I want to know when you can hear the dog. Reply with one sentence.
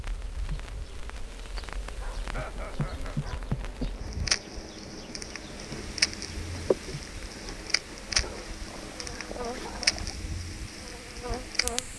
You can hear the dog from 1.9 to 3.5 s and from 8.2 to 10.2 s.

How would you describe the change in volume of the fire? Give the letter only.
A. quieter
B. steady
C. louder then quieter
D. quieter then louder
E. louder
E.